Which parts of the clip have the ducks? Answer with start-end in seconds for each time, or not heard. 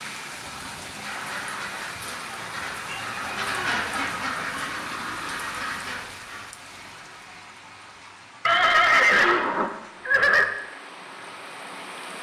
1.0-6.4.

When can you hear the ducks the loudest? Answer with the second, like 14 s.
4 s.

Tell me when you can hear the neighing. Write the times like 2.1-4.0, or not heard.
0.9-1.9, 4.5-6.0, 8.4-10.4.